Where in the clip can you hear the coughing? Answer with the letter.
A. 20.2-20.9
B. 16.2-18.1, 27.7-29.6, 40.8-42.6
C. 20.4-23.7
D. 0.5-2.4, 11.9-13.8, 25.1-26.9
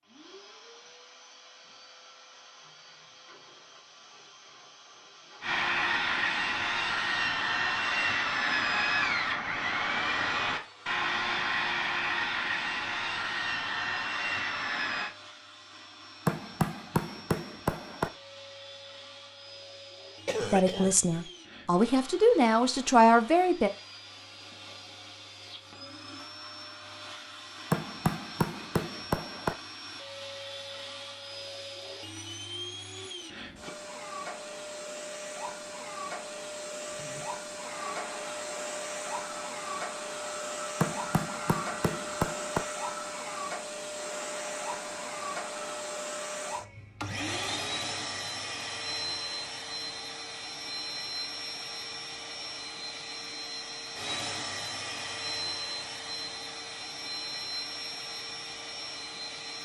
A.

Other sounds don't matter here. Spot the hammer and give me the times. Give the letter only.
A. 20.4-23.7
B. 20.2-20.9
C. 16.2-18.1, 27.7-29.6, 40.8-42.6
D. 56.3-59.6
C.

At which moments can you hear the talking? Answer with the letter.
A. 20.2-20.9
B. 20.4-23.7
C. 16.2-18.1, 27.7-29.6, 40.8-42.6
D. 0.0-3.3
B.